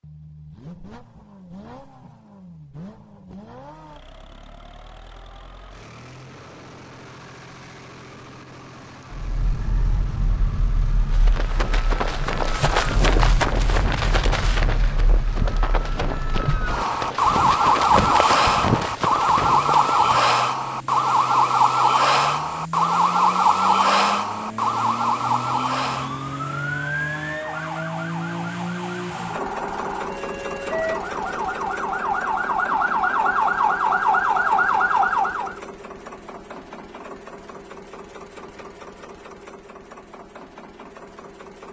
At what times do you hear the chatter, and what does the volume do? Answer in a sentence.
The chatter can't be heard in this clip.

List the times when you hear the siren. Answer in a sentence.
The siren can be heard from 9.1 to 35.6 s.